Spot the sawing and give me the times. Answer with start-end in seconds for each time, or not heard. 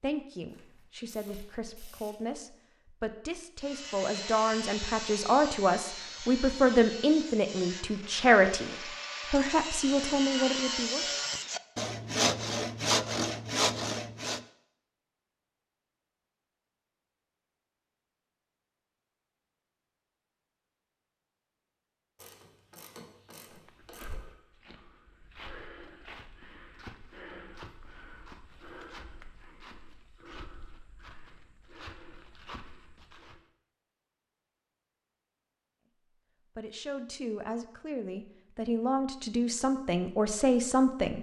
3.6-14.4.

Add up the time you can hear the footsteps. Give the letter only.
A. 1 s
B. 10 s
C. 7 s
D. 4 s
B.